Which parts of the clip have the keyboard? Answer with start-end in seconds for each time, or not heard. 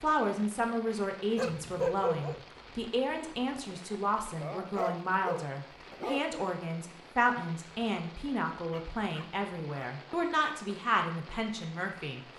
not heard.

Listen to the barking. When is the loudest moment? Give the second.
2 s.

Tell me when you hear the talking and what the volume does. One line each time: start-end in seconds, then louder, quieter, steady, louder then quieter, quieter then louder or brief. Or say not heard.
0.0-12.2 steady.